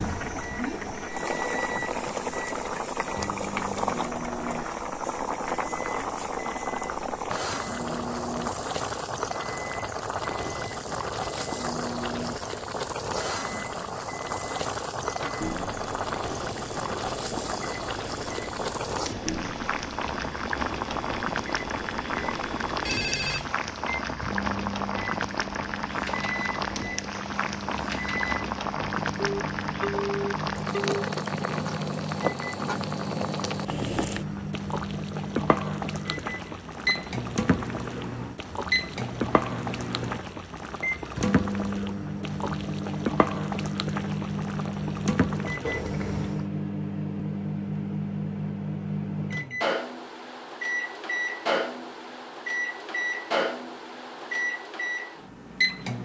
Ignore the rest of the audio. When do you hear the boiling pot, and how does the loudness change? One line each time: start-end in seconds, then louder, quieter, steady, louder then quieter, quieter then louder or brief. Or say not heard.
0.0-46.5 steady.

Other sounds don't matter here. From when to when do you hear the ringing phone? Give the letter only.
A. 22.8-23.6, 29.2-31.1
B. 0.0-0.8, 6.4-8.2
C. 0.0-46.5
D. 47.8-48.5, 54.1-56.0
A.